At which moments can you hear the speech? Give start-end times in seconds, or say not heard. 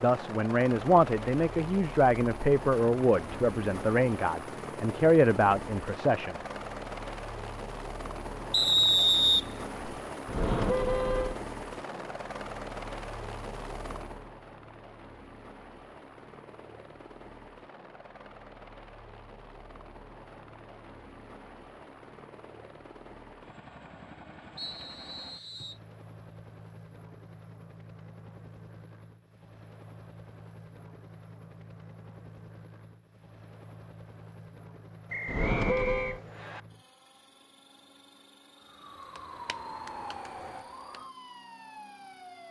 0.0-6.3.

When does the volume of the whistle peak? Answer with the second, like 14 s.
9 s.